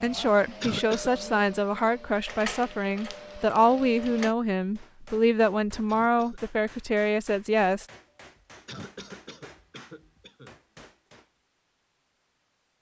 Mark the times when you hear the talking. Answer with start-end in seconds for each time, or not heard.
0.0-7.8.